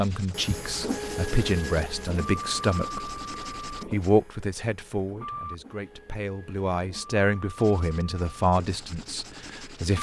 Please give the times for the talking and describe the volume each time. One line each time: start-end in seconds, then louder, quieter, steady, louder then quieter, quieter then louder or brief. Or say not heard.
0.0-9.9 steady.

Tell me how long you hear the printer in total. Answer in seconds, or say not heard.
10 s.